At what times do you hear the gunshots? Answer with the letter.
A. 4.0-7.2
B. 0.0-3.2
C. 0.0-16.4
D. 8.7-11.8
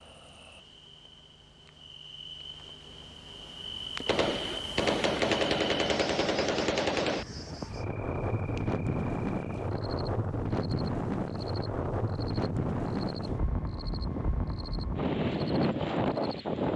A.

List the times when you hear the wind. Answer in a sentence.
The wind can be heard from 7.2 to 16.7 s.